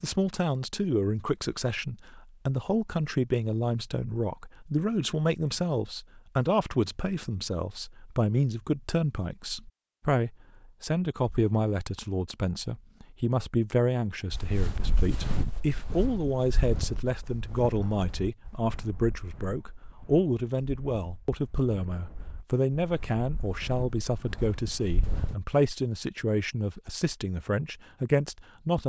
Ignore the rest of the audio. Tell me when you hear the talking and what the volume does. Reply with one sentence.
You can hear the talking from 0.0 to 28.8 s, at a steady volume.